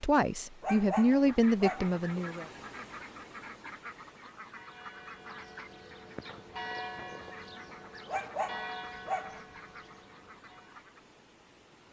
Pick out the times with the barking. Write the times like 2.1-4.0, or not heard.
0.6-1.9, 8.1-9.4.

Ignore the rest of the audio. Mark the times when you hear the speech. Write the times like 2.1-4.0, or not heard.
0.0-2.5.